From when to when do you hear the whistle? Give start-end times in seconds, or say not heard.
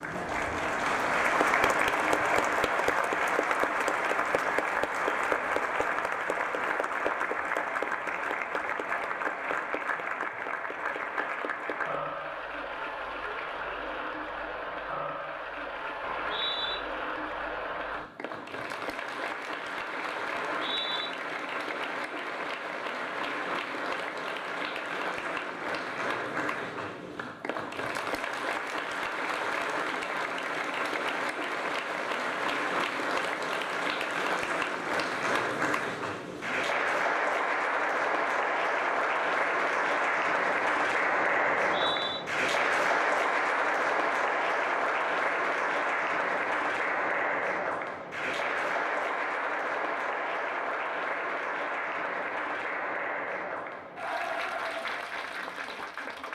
16.0-16.8, 20.3-21.1, 41.6-42.2.